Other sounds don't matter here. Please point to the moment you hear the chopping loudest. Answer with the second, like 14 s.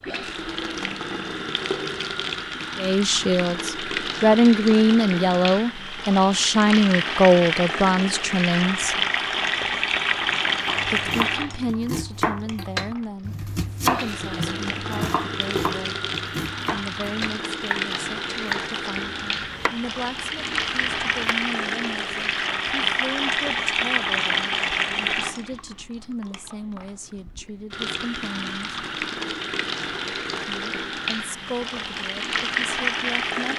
14 s.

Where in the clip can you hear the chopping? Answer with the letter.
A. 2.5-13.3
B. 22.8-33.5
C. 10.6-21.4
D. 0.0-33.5
C.